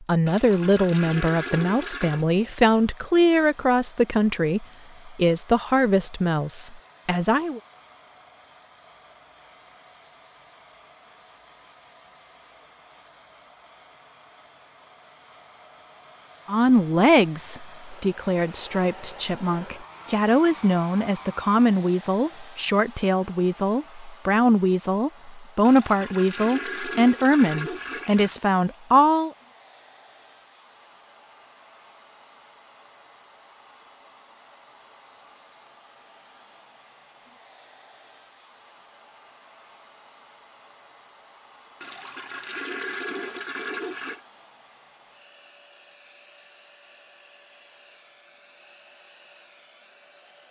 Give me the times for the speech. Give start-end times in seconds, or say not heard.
0.1-7.6, 16.4-29.3.